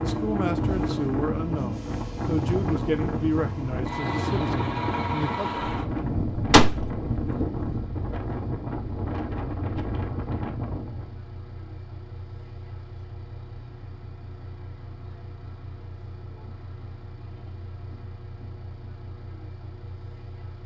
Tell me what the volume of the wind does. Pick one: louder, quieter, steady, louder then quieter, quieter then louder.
steady.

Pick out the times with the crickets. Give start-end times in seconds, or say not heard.
not heard.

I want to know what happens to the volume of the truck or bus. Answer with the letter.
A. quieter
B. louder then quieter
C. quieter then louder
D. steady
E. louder
A.